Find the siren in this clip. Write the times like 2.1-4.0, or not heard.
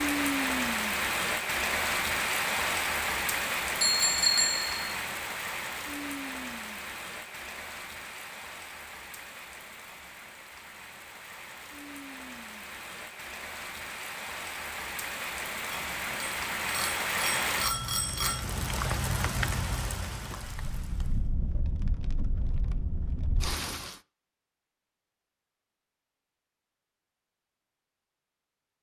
not heard.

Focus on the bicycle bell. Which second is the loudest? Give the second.
4 s.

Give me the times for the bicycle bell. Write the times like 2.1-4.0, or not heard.
3.8-4.8, 15.7-18.4.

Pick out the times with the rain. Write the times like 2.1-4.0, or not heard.
0.0-24.0.